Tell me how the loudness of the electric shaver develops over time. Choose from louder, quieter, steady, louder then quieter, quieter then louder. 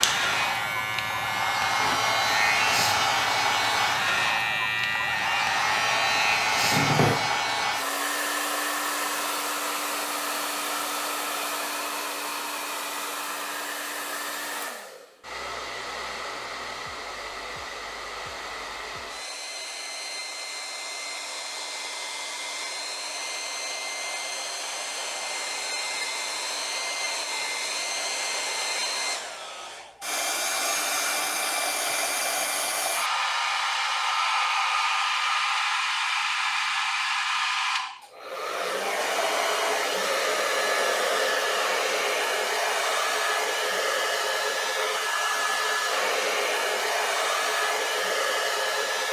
steady.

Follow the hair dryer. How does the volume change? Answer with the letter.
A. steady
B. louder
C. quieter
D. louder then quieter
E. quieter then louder
E.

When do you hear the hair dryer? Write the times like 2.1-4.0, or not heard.
0.0-49.0.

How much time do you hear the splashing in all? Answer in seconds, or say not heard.
not heard.